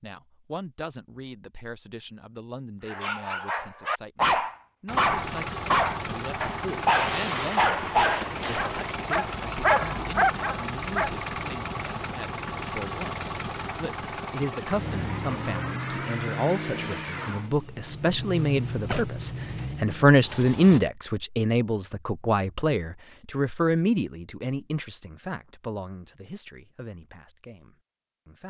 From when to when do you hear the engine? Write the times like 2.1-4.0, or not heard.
4.8-20.8.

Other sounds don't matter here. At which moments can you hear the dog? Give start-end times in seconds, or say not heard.
2.9-11.2.